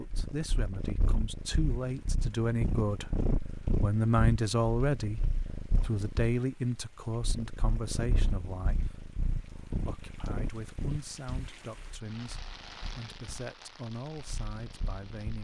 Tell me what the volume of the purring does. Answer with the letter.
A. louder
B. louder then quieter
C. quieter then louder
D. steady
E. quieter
E.